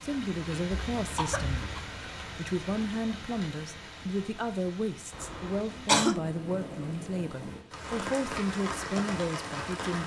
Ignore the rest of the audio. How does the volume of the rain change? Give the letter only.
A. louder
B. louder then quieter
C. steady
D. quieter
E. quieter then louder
E.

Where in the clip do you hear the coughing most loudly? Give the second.
6 s.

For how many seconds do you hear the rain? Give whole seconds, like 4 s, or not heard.
10 s.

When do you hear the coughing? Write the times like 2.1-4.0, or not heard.
1.0-1.9, 5.1-6.2.